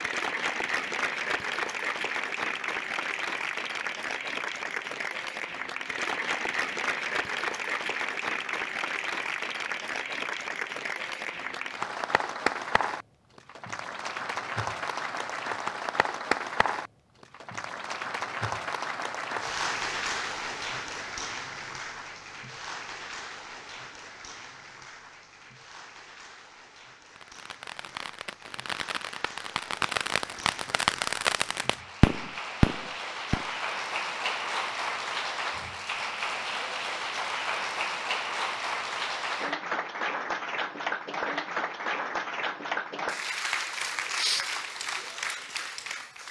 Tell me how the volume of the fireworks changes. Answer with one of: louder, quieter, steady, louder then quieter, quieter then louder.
louder.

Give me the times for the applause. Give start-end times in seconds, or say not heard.
0.0-46.2.